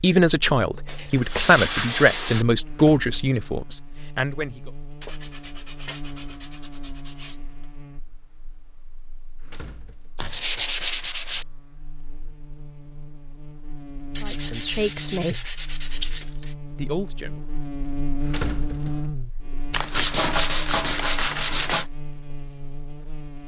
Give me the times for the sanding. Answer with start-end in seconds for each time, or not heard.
0.8-2.5, 5.0-7.7, 10.2-11.4, 14.2-16.6, 19.7-21.9.